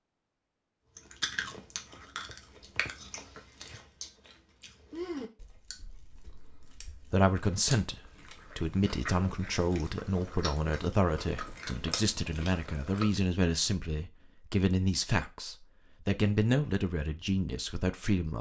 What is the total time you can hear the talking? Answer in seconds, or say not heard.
11 s.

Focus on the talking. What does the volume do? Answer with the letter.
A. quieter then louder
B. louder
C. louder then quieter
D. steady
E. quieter
D.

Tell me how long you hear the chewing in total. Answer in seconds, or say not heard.
12 s.